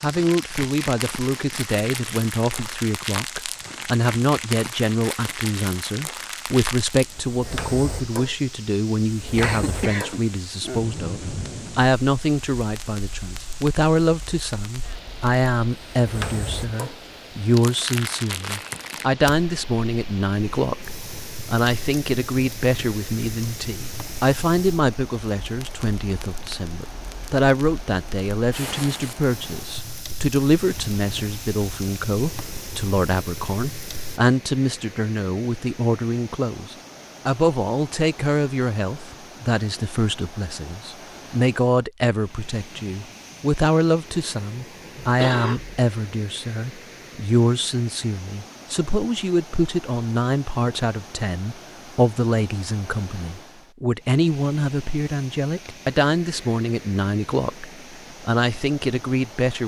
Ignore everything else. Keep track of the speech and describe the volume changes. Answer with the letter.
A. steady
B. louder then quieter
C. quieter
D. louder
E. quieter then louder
A.